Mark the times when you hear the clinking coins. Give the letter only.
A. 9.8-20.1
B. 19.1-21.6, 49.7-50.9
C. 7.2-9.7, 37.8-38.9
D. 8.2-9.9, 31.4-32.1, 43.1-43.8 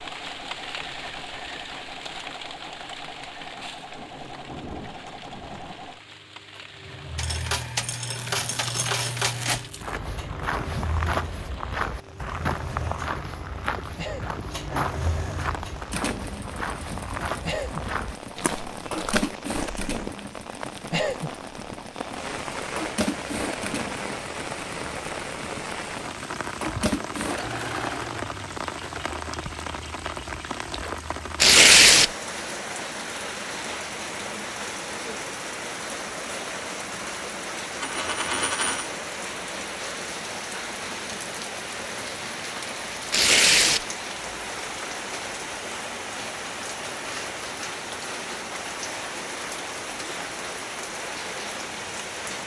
C.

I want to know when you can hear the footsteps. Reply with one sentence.
The footsteps can be heard from 9.8 to 20.1 s.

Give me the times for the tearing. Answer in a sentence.
You can hear the tearing from 8.2 to 9.9 s, from 31.4 to 32.1 s and from 43.1 to 43.8 s.